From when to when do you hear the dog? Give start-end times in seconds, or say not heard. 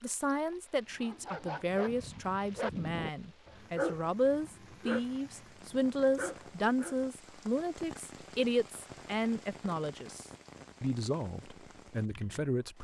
0.9-7.0.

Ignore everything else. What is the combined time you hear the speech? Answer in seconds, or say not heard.
13 s.